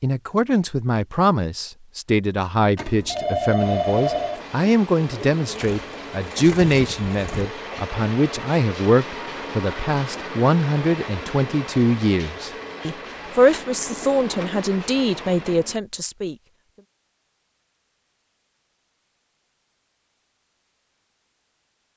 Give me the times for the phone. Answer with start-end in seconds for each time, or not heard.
2.8-4.5.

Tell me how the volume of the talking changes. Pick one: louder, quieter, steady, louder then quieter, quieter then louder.
steady.